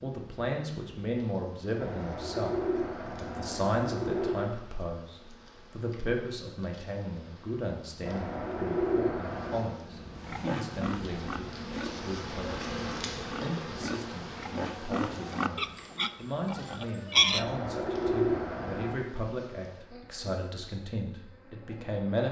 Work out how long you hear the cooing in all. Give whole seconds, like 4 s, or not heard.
6 s.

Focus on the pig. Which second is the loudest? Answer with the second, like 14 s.
17 s.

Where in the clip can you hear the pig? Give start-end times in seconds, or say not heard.
10.2-17.4.